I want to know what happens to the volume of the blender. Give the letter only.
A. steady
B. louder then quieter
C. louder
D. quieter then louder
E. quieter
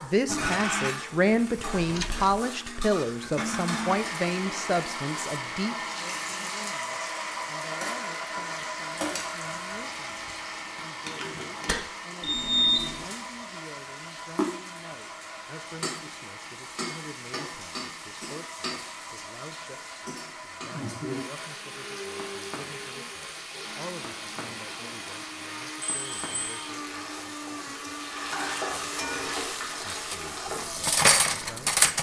E.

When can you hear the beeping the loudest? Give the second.
13 s.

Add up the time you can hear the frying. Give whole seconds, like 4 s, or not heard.
32 s.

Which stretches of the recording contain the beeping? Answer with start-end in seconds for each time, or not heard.
1.6-2.4, 12.2-13.1, 26.0-26.6.